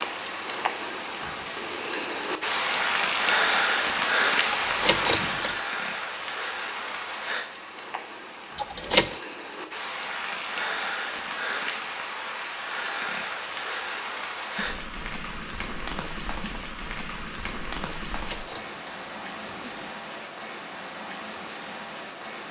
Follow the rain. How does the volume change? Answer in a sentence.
The loudness of the rain goes down.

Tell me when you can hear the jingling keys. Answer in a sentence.
The jingling keys can be heard from 4.5 to 5.7 s, from 8.6 to 9.2 s and from 18.1 to 19.9 s.